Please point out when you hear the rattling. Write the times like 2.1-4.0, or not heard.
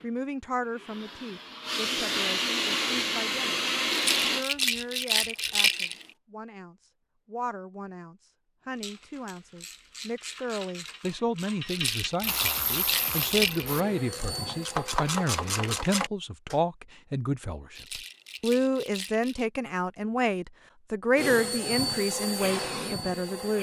3.9-6.0, 11.7-13.7, 17.7-19.4.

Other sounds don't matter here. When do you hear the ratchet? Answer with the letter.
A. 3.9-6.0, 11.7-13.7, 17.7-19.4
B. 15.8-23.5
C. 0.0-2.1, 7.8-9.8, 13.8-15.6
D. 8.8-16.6
D.